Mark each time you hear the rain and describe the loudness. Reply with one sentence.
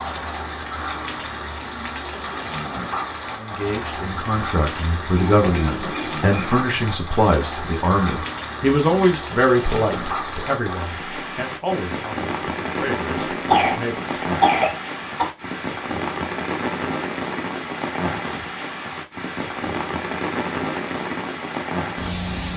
The rain can be heard from 0.0 to 22.5 s, at a steady volume.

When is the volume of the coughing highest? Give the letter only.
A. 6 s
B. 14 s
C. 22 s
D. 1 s
B.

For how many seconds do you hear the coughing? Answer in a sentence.
The coughing can be heard for 3 seconds in total.